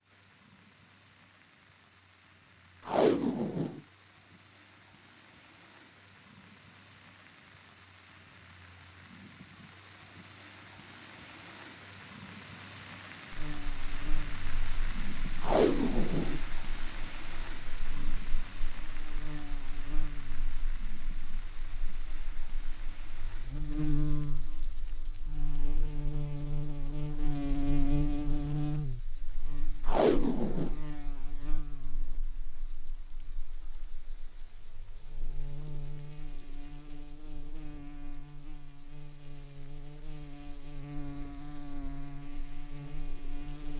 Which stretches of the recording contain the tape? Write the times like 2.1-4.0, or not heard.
2.9-3.8, 15.4-16.4, 29.9-30.8.